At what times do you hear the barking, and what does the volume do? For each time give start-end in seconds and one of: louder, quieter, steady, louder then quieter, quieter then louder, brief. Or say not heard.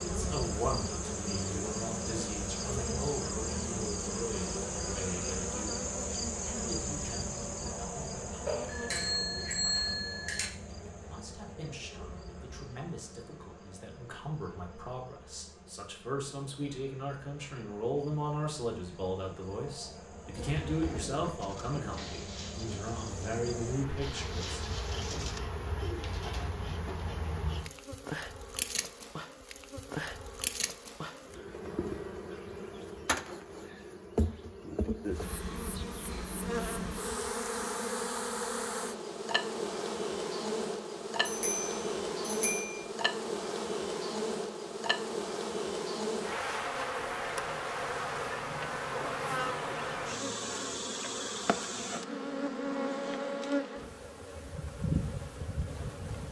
not heard.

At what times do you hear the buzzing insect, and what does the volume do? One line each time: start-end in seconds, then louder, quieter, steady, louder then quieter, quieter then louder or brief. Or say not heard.
0.0-56.2 quieter then louder.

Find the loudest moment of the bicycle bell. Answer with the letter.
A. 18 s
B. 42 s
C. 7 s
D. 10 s
D.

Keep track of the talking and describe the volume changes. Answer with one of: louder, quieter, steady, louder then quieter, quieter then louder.
quieter then louder.